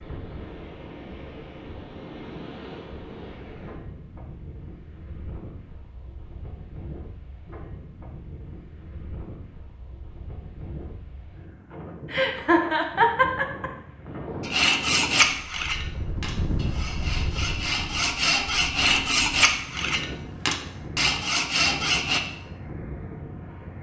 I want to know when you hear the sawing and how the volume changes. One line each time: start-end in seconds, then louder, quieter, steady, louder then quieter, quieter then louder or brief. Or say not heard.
14.4-22.2 quieter then louder.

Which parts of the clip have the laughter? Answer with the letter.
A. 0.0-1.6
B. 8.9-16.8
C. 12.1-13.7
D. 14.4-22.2
C.